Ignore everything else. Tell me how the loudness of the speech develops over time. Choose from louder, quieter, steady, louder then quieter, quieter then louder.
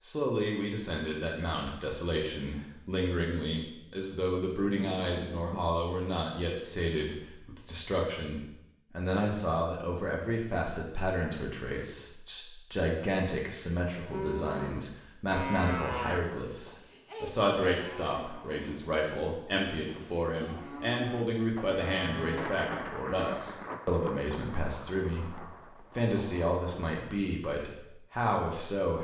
steady.